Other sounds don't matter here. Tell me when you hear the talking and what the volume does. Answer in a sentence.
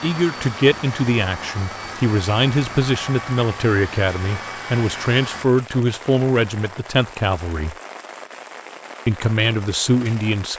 You can hear the talking from 0.0 to 7.8 s, at a steady volume; and briefly from 9.1 to 10.5 s.